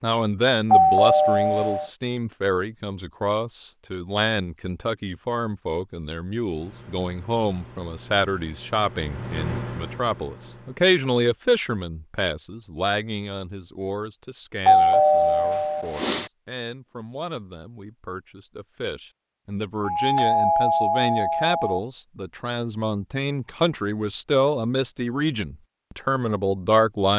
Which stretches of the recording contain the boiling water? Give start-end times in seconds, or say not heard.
not heard.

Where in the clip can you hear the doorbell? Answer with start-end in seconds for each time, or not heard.
0.7-1.9, 14.7-16.3, 19.8-21.8.